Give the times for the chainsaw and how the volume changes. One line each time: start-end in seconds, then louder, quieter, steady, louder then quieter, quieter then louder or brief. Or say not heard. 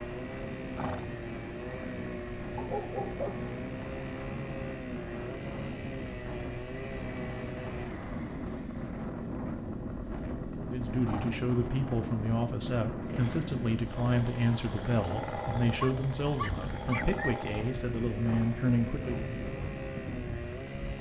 0.0-20.9 steady.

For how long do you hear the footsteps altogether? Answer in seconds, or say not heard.
not heard.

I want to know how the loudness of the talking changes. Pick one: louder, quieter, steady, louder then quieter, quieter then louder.
steady.